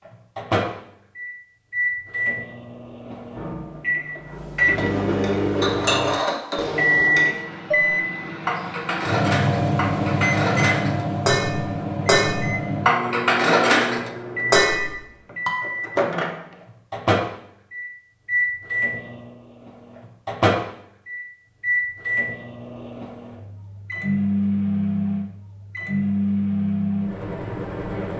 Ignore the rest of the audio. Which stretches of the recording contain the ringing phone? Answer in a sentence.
The ringing phone can't be heard in this clip.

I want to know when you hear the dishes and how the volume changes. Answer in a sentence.
You can hear the dishes from 5.2 to 15.6 s, getting louder.